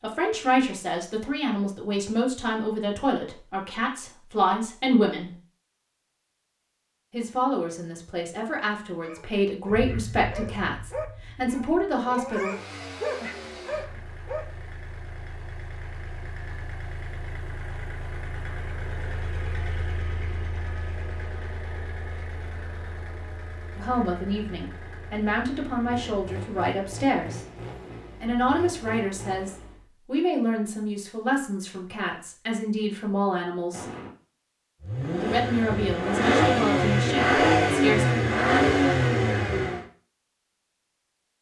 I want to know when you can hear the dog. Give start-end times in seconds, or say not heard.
9.0-14.4.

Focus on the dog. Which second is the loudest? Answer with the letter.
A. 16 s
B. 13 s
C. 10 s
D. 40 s
B.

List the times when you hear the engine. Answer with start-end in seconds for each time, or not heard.
12.4-29.9, 34.8-39.9.